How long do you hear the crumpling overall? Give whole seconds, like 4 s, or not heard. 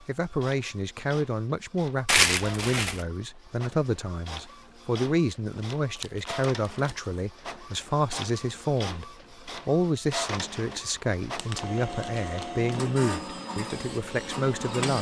4 s.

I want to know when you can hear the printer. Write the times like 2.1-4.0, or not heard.
0.0-14.9.